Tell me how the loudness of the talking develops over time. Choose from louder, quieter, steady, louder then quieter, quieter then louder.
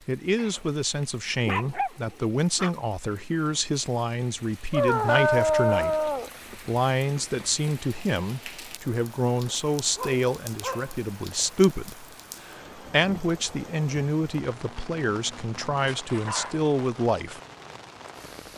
steady.